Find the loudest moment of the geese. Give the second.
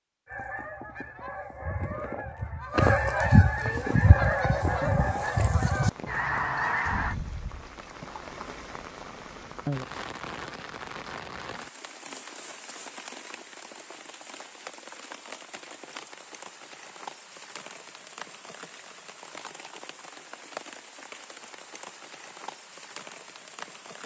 3 s.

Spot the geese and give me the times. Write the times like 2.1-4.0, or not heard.
0.2-7.2.